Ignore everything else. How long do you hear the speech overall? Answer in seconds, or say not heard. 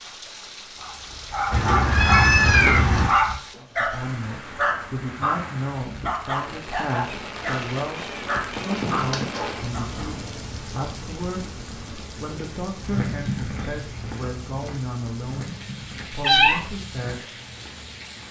14 s.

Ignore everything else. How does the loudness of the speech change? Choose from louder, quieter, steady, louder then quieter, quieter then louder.
steady.